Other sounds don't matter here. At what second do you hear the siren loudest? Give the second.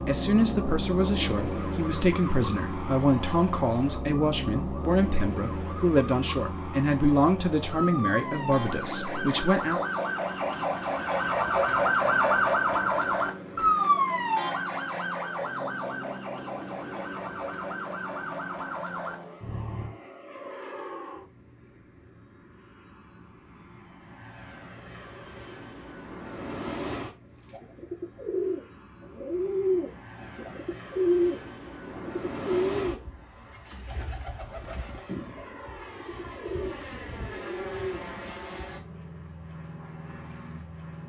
12 s.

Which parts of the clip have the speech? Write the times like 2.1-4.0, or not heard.
0.0-9.8.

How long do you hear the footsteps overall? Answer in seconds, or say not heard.
not heard.